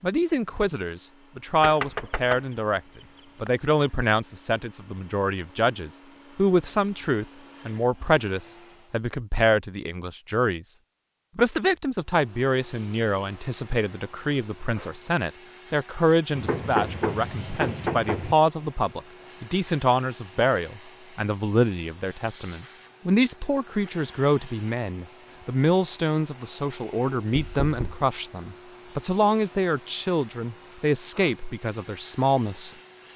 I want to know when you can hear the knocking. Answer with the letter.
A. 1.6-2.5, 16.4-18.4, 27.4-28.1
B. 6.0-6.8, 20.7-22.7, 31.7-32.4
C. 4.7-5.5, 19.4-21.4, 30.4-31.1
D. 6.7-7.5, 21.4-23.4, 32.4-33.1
A.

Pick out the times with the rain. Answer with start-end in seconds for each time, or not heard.
not heard.